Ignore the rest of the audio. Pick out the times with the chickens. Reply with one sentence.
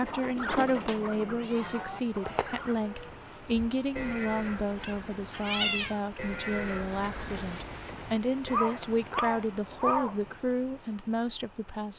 The chickens can be heard from 0.0 to 2.8 s.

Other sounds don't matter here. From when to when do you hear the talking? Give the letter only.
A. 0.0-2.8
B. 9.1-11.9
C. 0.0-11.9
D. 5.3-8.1
C.